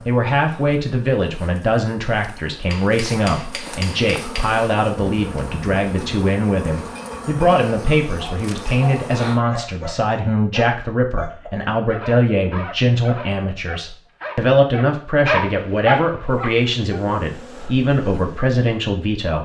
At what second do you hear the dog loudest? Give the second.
15 s.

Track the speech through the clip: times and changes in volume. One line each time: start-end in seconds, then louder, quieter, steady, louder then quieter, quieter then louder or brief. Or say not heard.
0.1-19.3 steady.